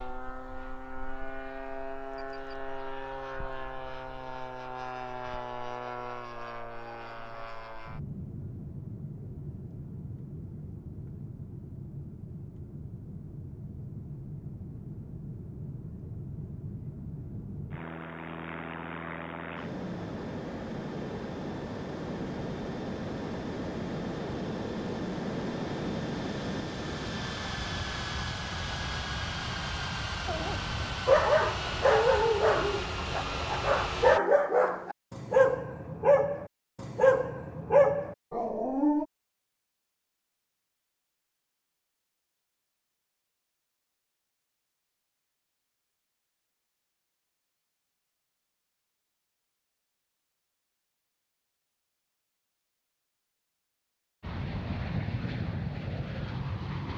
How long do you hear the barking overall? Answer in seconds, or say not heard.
9 s.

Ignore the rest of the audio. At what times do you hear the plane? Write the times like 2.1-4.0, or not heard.
0.0-34.2, 54.2-56.9.